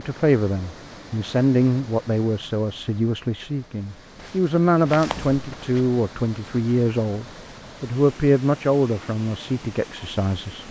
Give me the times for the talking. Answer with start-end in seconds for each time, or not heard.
0.0-10.6.